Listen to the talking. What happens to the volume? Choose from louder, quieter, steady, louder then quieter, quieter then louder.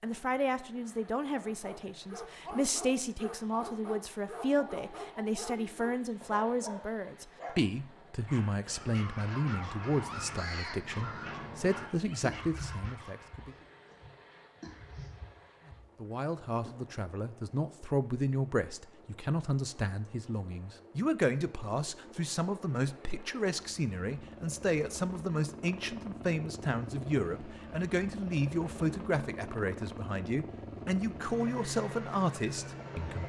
steady.